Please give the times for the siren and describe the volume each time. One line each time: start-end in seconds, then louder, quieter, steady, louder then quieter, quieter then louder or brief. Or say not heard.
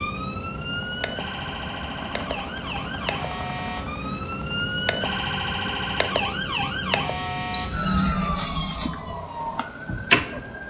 0.0-10.6 louder.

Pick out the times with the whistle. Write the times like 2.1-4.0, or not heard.
7.5-8.2.